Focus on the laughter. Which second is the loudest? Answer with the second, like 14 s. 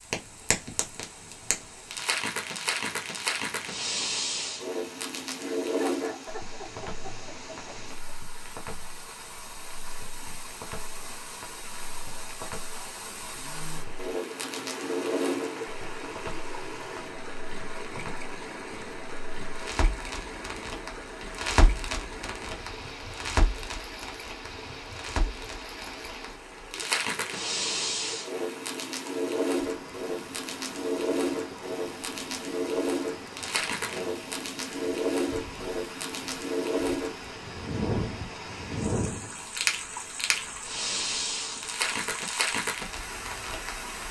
6 s.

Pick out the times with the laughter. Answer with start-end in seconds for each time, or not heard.
5.7-8.2.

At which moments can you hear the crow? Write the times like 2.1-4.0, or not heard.
not heard.